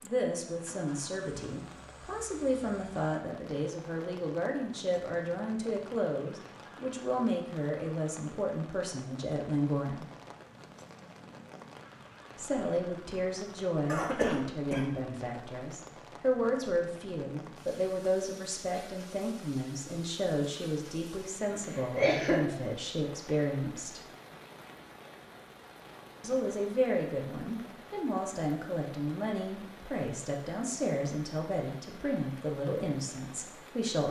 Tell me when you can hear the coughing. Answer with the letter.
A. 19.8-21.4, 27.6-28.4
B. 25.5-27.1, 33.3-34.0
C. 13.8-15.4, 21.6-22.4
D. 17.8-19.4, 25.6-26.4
C.